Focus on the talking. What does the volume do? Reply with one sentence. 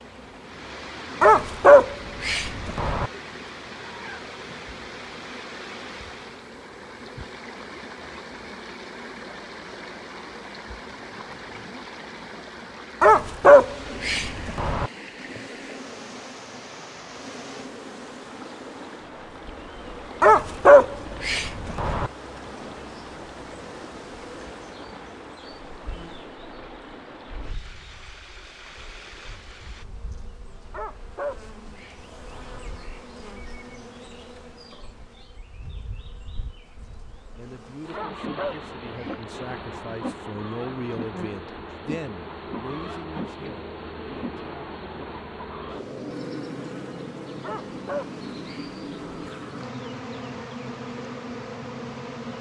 The volume of the talking goes up, then down.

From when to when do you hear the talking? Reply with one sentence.
You can hear the talking from 37.4 to 45.0 s.